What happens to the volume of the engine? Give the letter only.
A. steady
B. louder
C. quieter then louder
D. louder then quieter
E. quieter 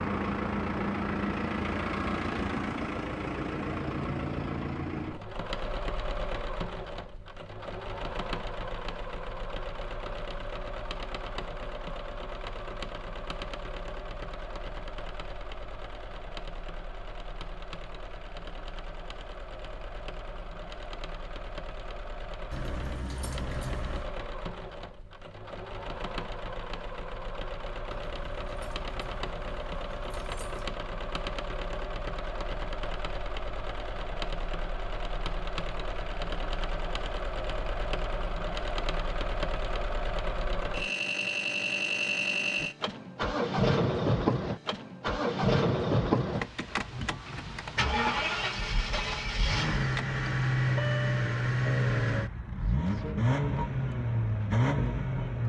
C.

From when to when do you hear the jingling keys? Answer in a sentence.
You can hear the jingling keys from 22.5 to 24.1 s and from 27.9 to 30.6 s.